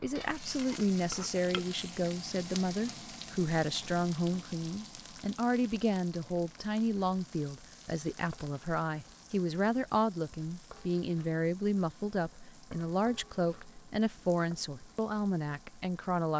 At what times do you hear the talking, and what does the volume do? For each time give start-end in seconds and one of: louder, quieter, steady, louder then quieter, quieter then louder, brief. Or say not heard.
0.0-16.3 steady.